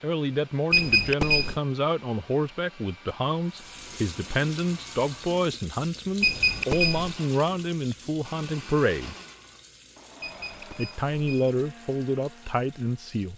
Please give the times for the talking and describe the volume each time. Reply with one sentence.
The talking can be heard from 0.0 to 9.2 s, at a steady volume; and briefly from 10.8 to 13.3 s.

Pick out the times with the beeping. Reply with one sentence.
The beeping can be heard from 0.7 to 1.6 s, from 6.2 to 7.2 s and from 10.2 to 11.5 s.